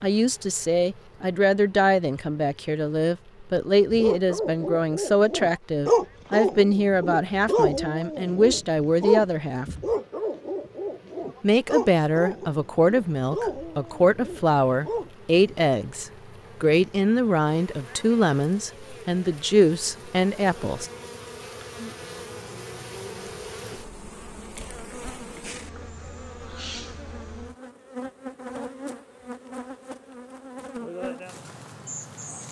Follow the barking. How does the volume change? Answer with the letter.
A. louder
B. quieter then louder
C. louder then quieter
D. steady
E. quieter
E.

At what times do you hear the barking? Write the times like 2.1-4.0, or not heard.
3.9-15.6.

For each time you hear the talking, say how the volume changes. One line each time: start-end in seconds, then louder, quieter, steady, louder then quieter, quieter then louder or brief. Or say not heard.
0.0-9.7 steady
11.4-20.9 steady.